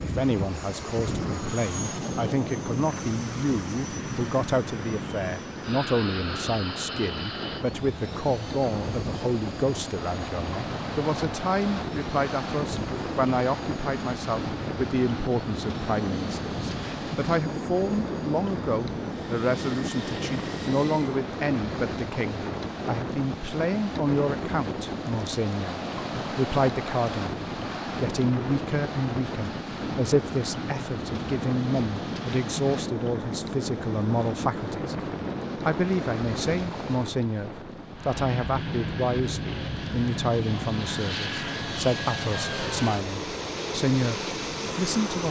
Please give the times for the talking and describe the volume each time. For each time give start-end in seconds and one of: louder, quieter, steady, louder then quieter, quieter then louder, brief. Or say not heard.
0.0-45.2 steady.